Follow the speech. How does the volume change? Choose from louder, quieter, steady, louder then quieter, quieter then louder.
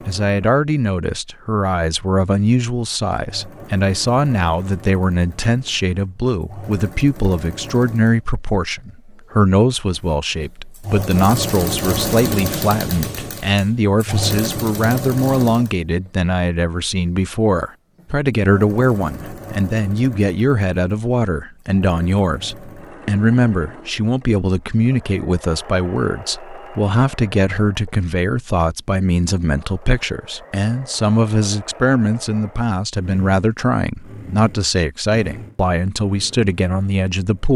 steady.